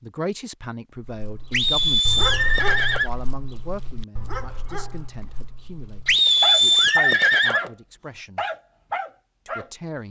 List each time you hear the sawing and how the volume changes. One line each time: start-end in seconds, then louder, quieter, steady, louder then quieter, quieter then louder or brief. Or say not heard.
not heard.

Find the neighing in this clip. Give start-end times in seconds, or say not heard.
1.5-3.1, 6.0-7.7.